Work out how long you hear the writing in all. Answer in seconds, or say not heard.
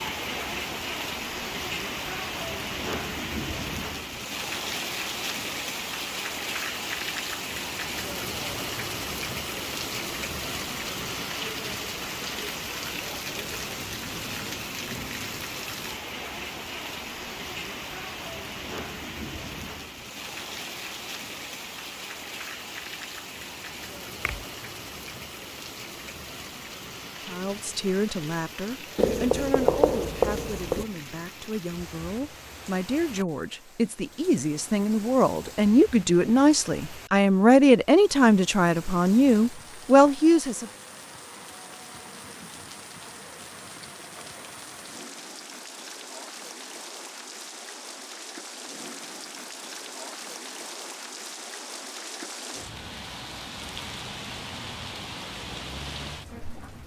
2 s.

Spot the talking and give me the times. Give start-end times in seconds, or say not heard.
27.2-40.6.